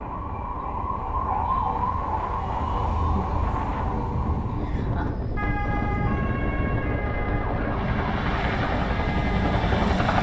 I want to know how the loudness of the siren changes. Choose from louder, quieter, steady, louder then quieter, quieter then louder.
quieter.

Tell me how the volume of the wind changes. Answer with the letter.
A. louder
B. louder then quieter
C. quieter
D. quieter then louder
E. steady
A.